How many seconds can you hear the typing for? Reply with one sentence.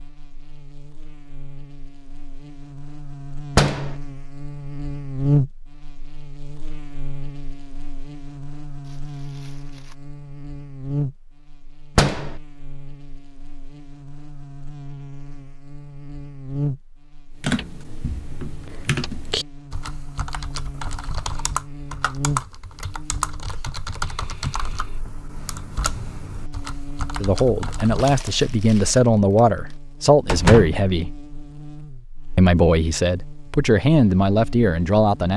The typing can be heard for 11 seconds in total.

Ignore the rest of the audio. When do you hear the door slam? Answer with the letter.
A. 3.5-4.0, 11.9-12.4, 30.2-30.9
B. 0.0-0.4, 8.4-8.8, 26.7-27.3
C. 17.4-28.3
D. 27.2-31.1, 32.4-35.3
A.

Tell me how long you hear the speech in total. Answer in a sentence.
The speech can be heard for 7 seconds in total.